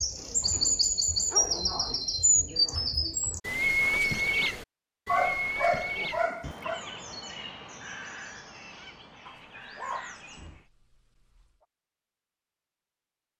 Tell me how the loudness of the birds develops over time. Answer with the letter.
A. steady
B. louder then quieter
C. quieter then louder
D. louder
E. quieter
E.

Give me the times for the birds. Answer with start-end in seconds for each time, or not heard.
0.0-10.7.